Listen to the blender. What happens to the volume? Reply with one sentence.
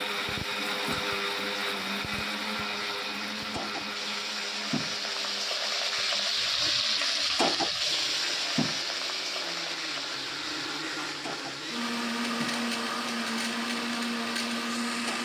The volume of the blender goes down, then up.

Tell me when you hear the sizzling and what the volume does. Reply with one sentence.
The sizzling can be heard from 0.0 to 15.2 s, getting louder then quieter.